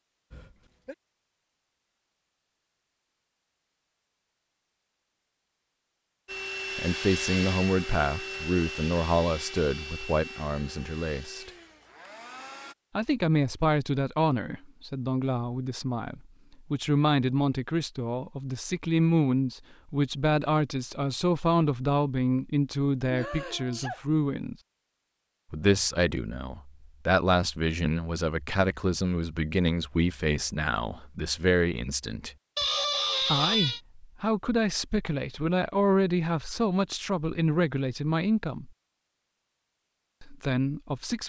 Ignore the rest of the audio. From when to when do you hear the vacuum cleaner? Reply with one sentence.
You can hear the vacuum cleaner from 6.2 to 12.8 s.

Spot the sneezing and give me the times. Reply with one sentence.
The sneezing can be heard from 0.3 to 0.9 s, from 23.0 to 24.1 s and from 32.5 to 33.8 s.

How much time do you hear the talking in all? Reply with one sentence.
You can hear the talking for 30 seconds altogether.